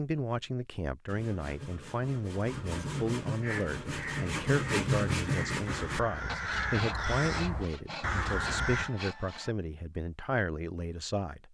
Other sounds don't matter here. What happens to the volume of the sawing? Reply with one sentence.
The loudness of the sawing goes up, then down.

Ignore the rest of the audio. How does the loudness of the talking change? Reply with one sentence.
The volume of the talking stays about the same.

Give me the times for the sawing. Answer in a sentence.
You can hear the sawing from 1.1 to 9.6 s.